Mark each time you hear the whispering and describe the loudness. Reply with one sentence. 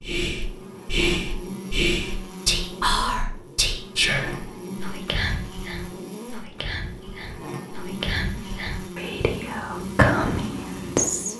The whispering can be heard from 0.0 to 11.3 s, getting quieter then louder.